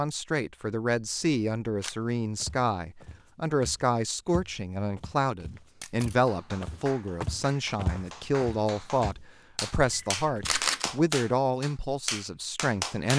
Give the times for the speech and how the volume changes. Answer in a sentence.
The speech can be heard from 0.0 to 13.1 s, at a steady volume.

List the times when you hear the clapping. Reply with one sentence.
You can hear the clapping from 6.2 to 13.1 s.